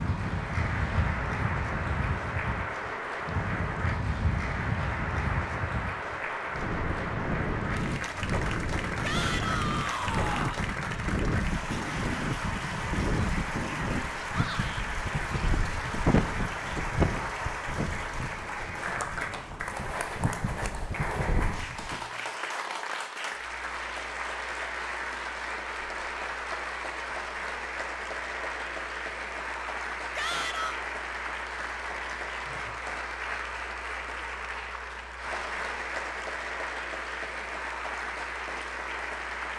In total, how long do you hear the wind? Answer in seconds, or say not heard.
22 s.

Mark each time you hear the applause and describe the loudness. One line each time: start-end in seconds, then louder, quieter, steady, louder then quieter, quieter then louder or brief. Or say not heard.
0.0-39.5 steady.